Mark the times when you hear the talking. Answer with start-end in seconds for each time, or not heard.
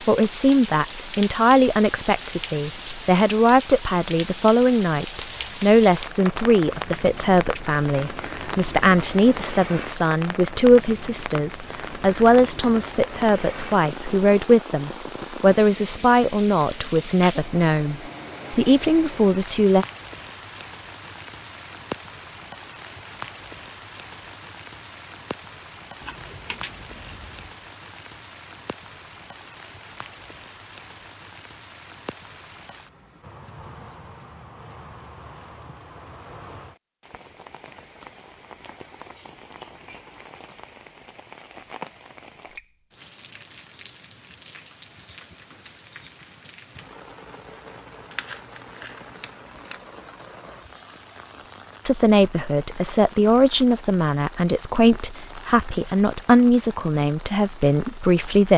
0.1-19.9, 51.9-58.5.